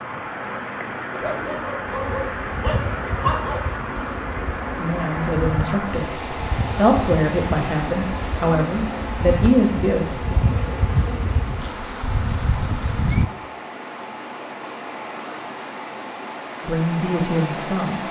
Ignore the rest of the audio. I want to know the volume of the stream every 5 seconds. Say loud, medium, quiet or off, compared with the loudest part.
loud, loud, medium, loud.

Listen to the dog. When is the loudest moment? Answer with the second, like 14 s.
3 s.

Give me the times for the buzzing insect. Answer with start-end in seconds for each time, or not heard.
1.9-13.2.